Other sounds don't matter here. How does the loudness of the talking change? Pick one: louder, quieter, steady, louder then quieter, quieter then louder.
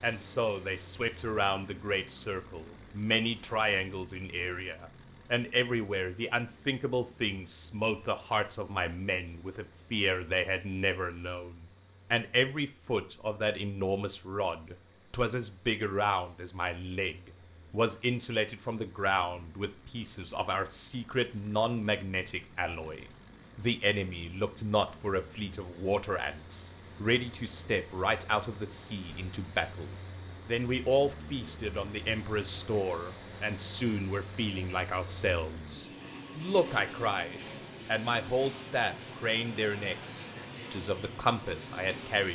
steady.